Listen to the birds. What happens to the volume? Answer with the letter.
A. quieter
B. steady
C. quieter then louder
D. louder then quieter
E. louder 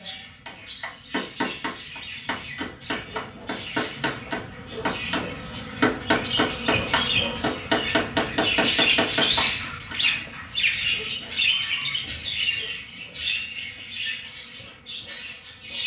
D.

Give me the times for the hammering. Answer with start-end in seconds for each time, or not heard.
0.5-9.9.